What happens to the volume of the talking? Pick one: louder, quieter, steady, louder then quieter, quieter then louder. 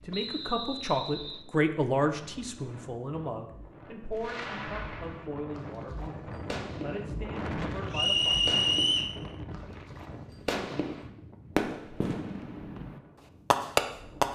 quieter.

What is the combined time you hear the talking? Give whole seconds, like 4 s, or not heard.
8 s.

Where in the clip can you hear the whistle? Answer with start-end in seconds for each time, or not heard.
0.1-1.4, 7.9-9.2.